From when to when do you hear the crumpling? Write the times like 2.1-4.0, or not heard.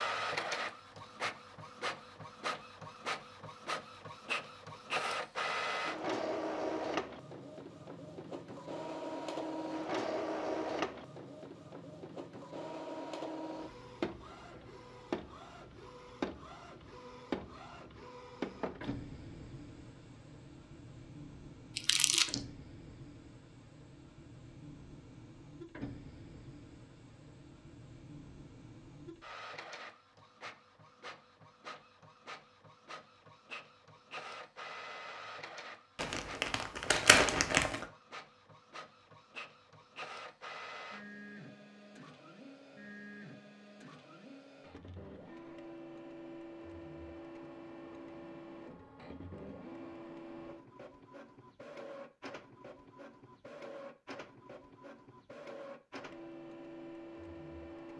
21.8-22.4, 36.0-37.9.